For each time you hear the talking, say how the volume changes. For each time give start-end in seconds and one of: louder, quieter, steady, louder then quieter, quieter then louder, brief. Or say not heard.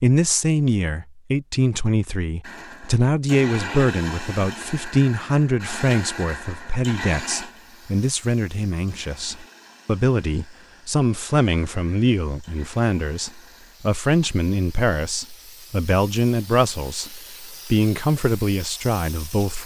0.0-19.6 steady.